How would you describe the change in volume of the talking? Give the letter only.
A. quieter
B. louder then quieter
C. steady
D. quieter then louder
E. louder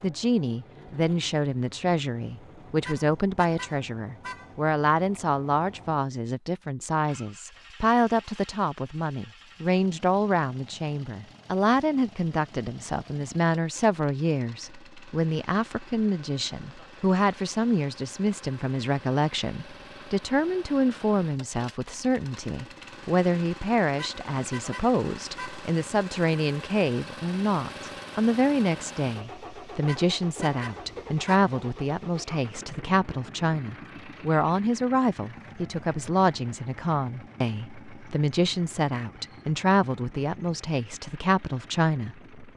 C.